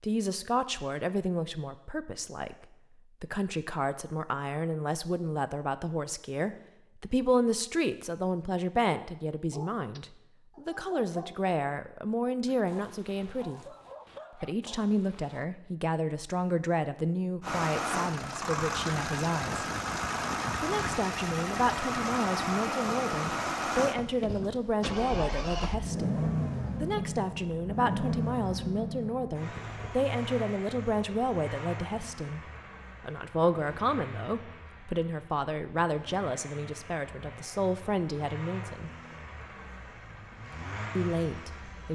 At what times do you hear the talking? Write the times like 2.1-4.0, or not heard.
0.0-13.7, 14.3-19.6, 20.6-32.4, 33.0-38.9, 41.0-41.8.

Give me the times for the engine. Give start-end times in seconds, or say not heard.
17.4-41.8.